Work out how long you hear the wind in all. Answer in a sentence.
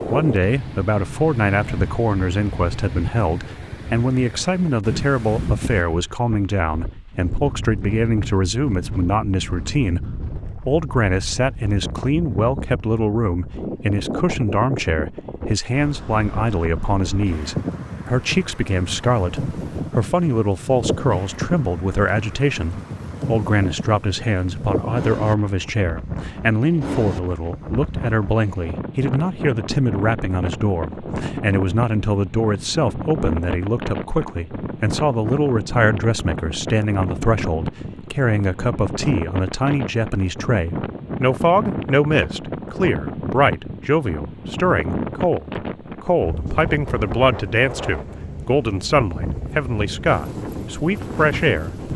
You can hear the wind for 52 seconds altogether.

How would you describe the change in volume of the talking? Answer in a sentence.
The volume of the talking stays about the same.